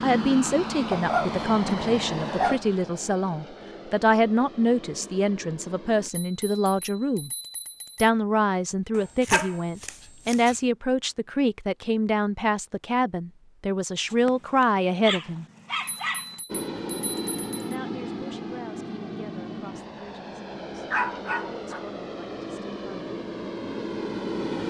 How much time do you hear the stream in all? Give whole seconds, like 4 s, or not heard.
not heard.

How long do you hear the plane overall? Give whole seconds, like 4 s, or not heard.
14 s.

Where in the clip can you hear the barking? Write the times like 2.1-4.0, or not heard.
0.9-2.8, 8.9-10.6, 14.1-16.4, 20.9-21.9.